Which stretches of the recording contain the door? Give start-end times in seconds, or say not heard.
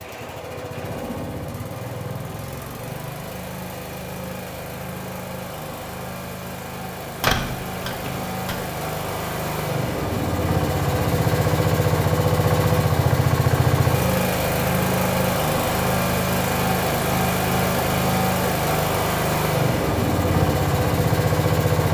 7.2-8.6.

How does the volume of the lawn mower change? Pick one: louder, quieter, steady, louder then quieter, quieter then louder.
louder.